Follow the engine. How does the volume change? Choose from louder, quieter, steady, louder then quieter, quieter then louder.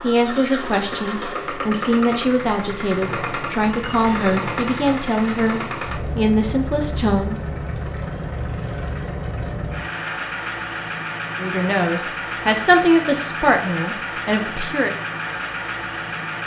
steady.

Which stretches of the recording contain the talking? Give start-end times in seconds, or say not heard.
0.0-7.4, 11.3-14.9.